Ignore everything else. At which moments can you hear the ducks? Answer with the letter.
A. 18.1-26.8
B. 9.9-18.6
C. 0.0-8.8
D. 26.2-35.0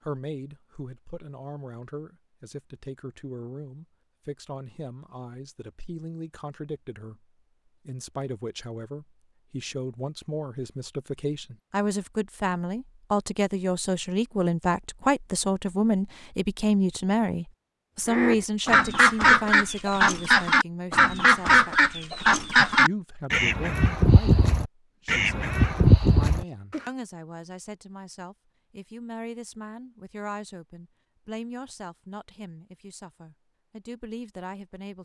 A.